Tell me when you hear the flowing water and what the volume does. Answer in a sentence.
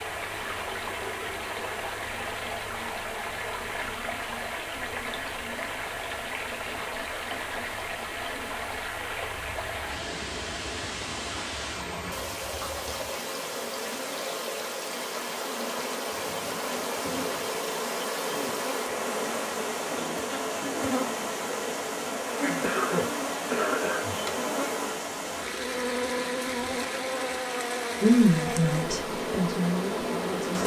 You can hear the flowing water from 0.0 to 30.6 s, at a steady volume.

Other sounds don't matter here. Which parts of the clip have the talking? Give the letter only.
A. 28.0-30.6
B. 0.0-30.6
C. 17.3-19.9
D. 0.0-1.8
A.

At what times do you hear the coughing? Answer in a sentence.
The coughing can be heard from 22.6 to 24.4 s.